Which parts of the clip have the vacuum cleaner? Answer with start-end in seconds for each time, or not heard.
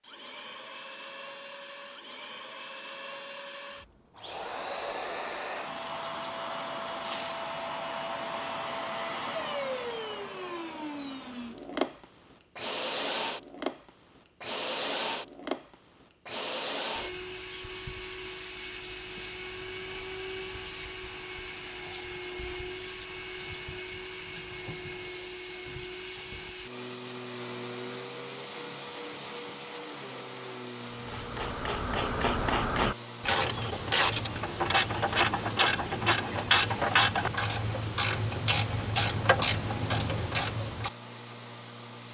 0.0-42.0.